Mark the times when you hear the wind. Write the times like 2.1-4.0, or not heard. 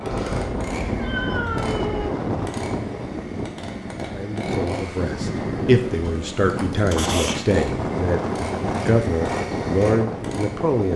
0.0-10.9.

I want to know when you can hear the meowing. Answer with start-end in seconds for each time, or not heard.
0.1-2.1, 6.9-7.7.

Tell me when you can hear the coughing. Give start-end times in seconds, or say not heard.
not heard.